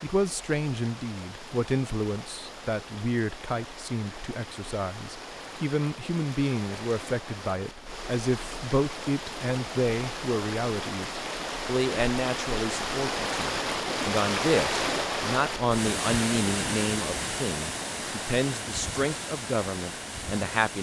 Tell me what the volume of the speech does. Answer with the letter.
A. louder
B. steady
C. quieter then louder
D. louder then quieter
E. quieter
B.